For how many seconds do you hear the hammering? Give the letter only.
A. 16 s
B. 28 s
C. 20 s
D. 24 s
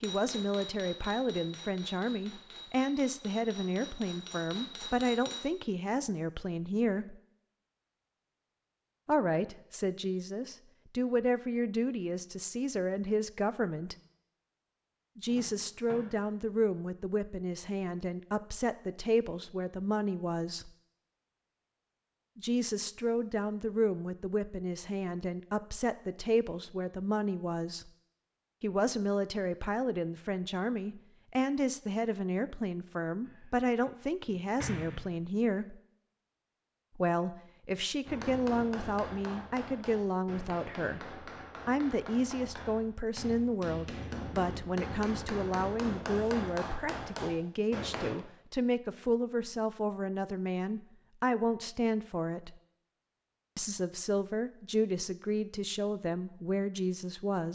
A.